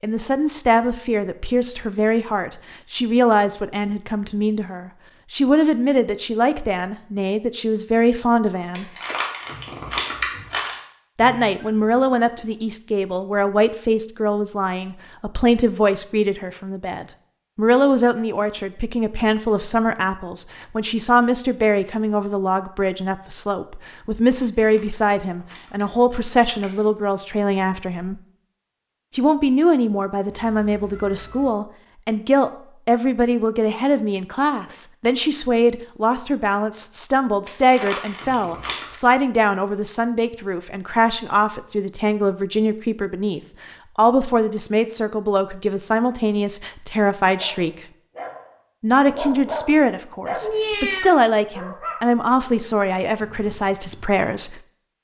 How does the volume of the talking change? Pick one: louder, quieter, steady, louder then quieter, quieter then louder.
steady.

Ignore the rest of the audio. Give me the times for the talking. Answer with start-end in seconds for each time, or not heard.
0.0-8.8, 11.2-28.2, 29.1-47.9, 48.8-54.6.